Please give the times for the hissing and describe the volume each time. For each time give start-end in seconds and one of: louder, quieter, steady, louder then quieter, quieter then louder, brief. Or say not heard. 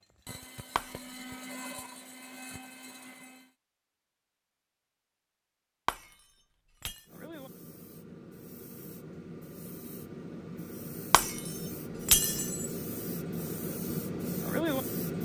7.0-15.2 louder.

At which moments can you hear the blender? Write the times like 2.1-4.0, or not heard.
0.0-3.5.